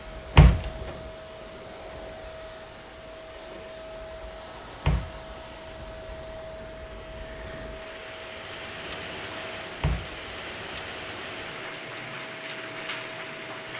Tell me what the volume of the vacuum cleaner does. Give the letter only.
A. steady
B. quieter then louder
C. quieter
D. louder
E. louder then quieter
A.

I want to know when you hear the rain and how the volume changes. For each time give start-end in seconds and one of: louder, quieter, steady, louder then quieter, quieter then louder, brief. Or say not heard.
0.0-13.7 louder.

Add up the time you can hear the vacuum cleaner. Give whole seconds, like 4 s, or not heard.
14 s.